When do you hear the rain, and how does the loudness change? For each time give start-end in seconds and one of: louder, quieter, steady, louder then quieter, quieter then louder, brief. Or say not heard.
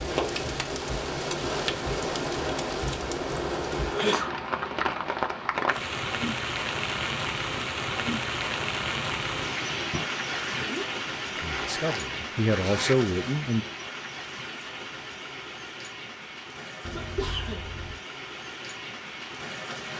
0.0-19.9 quieter.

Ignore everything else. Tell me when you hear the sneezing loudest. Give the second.
4 s.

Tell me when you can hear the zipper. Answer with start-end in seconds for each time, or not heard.
11.3-13.1.